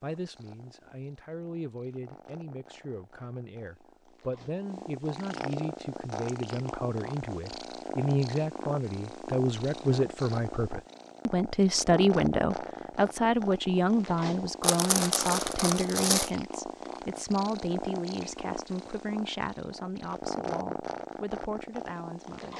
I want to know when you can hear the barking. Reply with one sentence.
You can't hear the barking here.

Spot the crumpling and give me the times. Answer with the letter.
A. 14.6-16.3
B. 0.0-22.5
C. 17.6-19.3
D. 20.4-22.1
A.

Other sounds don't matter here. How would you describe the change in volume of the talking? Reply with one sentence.
The volume of the talking goes up, then down.